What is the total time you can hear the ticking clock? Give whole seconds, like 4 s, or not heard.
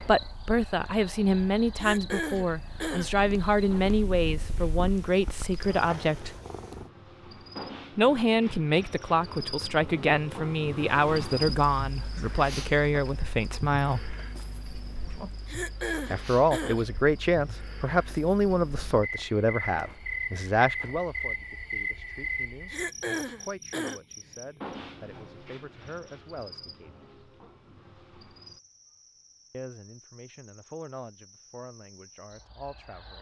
not heard.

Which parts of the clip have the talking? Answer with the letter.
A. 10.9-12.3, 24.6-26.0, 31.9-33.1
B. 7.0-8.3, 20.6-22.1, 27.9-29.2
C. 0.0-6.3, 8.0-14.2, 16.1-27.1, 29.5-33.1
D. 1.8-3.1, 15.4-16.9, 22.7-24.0
C.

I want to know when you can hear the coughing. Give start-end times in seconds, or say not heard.
1.8-3.1, 15.4-16.9, 22.7-24.0.